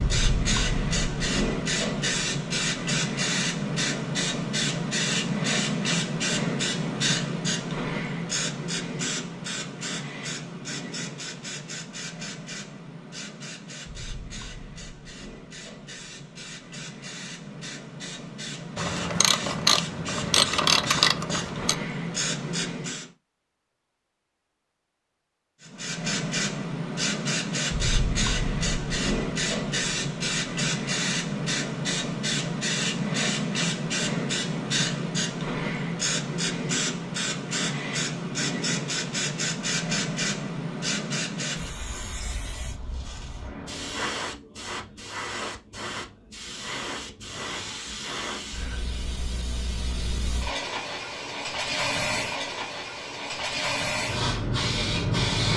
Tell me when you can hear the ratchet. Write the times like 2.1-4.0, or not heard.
18.8-21.8.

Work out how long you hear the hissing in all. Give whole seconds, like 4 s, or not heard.
53 s.